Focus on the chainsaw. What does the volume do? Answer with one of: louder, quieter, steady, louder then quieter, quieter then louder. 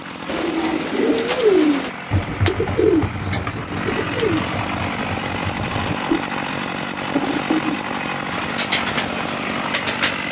louder.